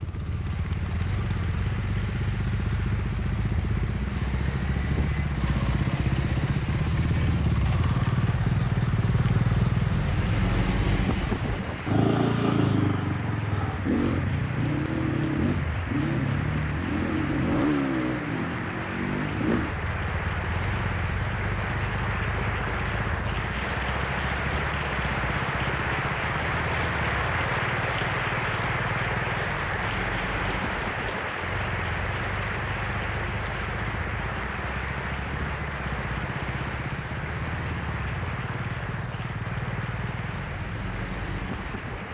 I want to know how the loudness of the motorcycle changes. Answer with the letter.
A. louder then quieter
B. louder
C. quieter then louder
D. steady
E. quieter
E.